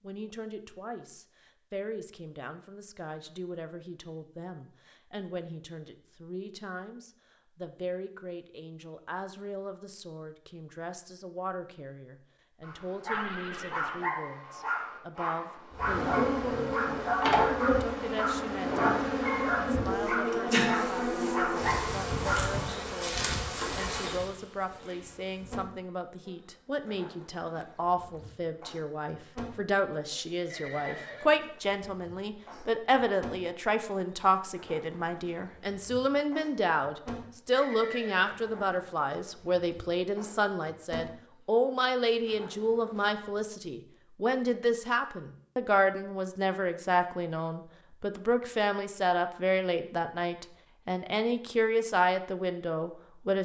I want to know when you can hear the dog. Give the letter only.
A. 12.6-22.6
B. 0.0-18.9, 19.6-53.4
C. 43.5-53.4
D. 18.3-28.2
A.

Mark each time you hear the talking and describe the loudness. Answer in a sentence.
You can hear the talking from 0.0 to 18.9 s, at a steady volume; and from 19.6 to 53.4 s, getting louder.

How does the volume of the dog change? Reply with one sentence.
The volume of the dog stays about the same.